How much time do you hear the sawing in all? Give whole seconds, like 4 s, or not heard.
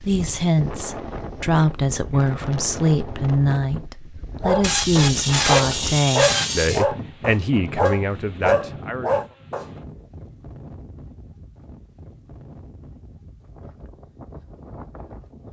2 s.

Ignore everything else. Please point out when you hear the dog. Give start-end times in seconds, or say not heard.
4.4-9.7.